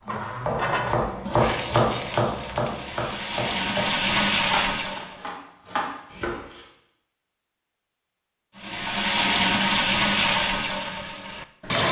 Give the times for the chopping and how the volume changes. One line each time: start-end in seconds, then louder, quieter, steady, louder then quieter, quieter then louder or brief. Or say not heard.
0.1-6.7 quieter.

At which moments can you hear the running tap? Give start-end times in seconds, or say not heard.
0.1-5.2, 8.6-11.8.